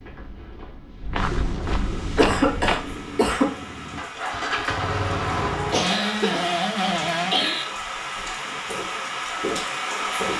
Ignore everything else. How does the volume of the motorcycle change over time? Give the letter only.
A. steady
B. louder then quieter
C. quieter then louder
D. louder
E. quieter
D.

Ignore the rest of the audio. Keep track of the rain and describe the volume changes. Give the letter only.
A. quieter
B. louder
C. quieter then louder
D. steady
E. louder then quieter
B.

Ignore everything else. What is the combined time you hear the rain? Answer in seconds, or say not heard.
9 s.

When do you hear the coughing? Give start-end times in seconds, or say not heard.
2.1-3.5, 5.7-7.7.